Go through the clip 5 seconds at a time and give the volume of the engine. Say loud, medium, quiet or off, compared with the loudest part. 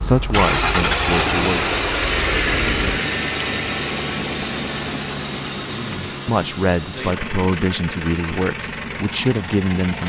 loud, medium.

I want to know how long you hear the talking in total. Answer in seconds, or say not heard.
6 s.